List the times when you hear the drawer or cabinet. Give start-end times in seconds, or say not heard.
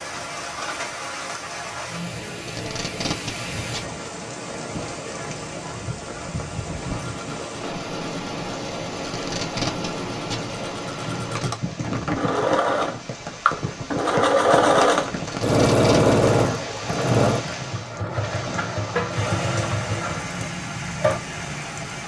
not heard.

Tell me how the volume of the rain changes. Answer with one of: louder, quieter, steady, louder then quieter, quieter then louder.
steady.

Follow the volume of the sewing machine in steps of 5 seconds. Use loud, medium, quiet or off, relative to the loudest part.
off, quiet, loud, loud, medium.